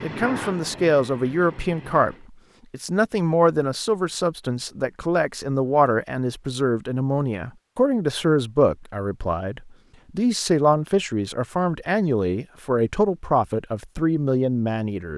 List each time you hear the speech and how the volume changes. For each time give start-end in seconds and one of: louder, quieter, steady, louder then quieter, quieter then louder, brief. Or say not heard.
0.0-15.1 steady.